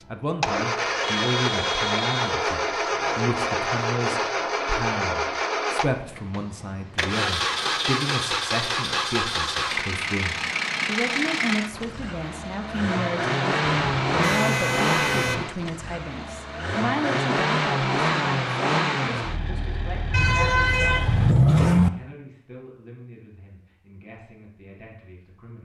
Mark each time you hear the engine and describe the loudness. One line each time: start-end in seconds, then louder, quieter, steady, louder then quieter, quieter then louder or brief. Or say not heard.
0.0-21.4 steady.